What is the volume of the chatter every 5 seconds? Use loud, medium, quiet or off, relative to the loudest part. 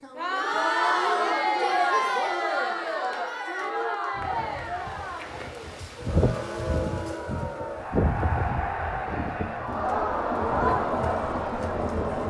loud, medium, loud.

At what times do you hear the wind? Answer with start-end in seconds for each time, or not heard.
4.2-12.2.